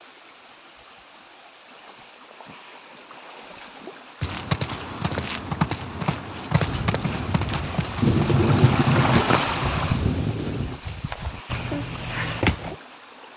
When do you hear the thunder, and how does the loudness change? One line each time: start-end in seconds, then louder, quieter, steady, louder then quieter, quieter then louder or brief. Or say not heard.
6.7-10.8 louder then quieter.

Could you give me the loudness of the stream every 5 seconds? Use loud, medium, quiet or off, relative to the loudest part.
quiet, loud, quiet.